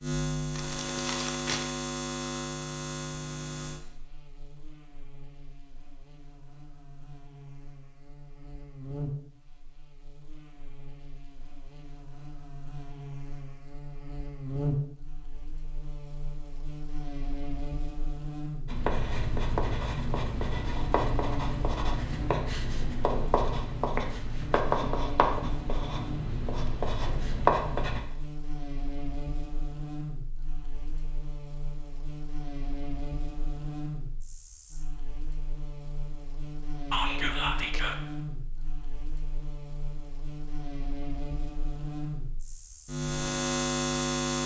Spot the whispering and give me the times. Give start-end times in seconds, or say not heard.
36.9-38.0.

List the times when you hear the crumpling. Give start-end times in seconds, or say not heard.
0.5-1.7.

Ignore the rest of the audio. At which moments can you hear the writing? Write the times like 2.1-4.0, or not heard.
18.6-28.0.